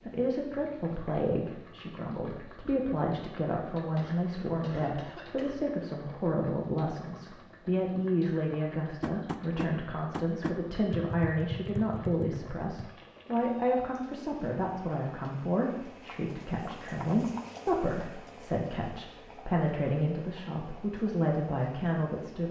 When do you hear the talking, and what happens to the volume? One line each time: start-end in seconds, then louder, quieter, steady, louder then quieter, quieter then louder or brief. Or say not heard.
0.0-22.4 steady.